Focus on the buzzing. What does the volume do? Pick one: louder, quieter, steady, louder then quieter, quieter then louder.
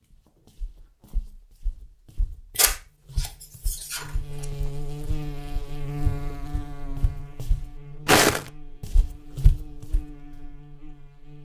quieter.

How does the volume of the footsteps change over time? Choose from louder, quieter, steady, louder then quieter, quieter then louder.
louder.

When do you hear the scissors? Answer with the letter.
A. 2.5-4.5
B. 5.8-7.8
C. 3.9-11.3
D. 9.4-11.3
A.